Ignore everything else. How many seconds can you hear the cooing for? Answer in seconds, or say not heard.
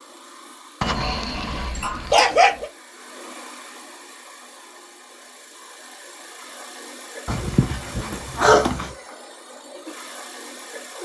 not heard.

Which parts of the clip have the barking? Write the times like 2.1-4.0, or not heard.
0.8-2.6, 7.2-8.9.